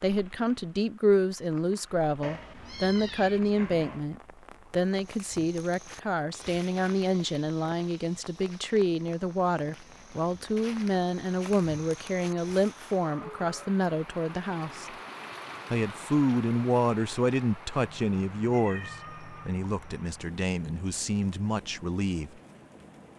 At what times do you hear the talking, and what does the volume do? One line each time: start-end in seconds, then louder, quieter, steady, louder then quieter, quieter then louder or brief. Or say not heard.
0.0-14.9 steady
15.7-22.3 quieter.